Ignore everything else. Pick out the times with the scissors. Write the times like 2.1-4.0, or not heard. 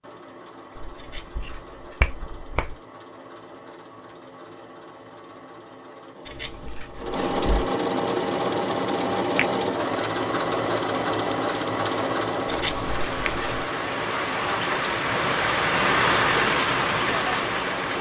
0.9-2.0, 6.2-7.7, 12.4-13.7.